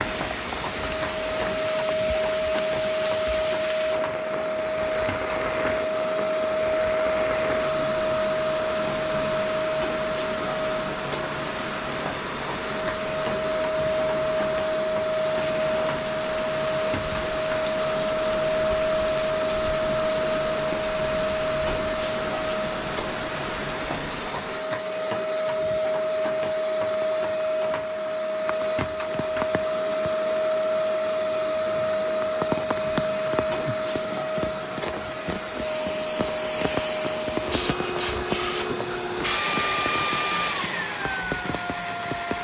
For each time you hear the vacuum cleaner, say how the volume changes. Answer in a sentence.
You can hear the vacuum cleaner from 0.0 to 42.3 s, at a steady volume.